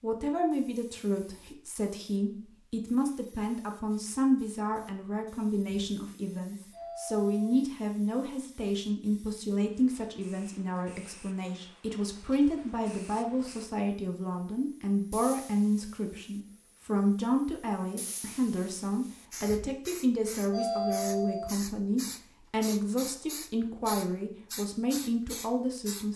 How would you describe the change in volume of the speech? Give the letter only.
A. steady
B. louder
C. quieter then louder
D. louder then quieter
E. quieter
A.